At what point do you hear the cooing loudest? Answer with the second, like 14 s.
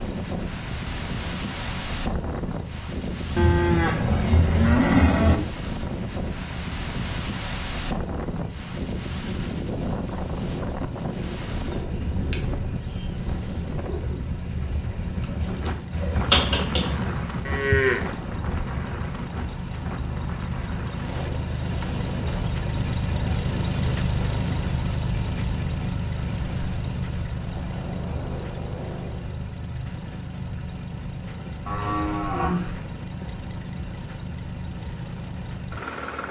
16 s.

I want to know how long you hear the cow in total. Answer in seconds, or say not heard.
4 s.